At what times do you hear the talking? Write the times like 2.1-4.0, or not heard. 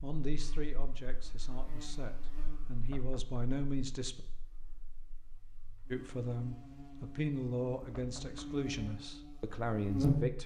0.0-4.2, 5.9-10.4.